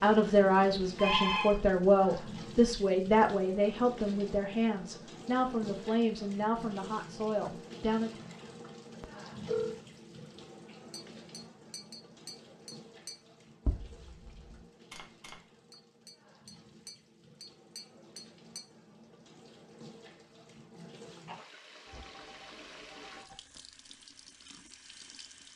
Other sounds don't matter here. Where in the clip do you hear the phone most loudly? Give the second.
1 s.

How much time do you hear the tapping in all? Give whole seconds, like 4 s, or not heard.
8 s.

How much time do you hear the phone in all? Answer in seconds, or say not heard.
3 s.